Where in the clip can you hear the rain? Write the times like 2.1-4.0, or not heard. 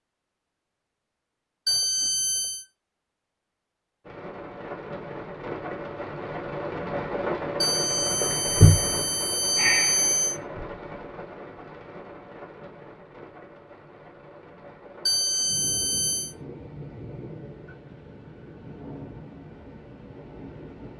4.0-20.9.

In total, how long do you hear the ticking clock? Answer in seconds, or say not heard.
not heard.